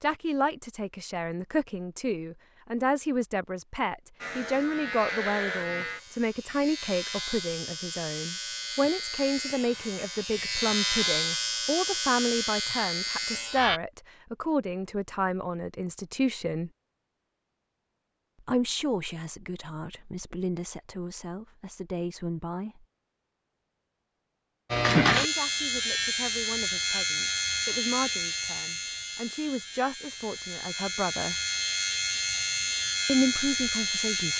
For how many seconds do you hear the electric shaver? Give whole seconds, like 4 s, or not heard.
19 s.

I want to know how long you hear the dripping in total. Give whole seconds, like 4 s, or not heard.
not heard.